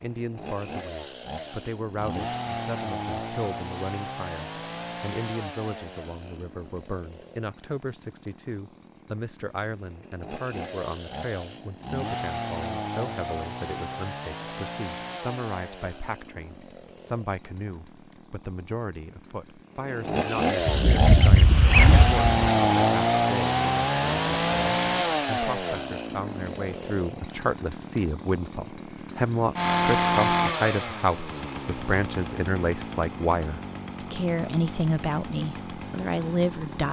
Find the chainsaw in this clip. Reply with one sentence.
The chainsaw can be heard from 0.0 to 36.8 s.